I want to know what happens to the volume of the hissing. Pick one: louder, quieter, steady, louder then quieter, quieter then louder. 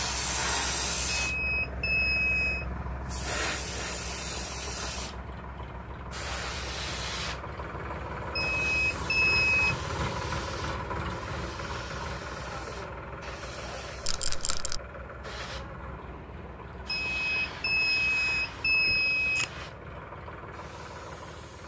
quieter.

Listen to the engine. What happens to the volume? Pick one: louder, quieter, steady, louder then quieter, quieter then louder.
louder then quieter.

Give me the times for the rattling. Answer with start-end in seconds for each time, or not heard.
14.0-14.8.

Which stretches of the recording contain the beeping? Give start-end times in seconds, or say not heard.
1.2-2.6, 8.3-9.8, 16.9-19.5.